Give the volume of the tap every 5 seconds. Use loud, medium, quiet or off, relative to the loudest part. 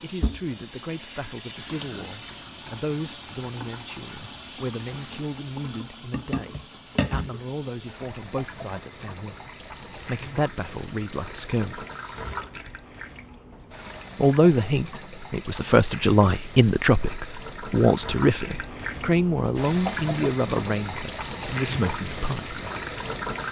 medium, medium, medium, medium, loud.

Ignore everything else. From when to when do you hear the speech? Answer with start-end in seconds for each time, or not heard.
0.0-11.8, 14.2-22.6.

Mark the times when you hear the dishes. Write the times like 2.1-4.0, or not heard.
not heard.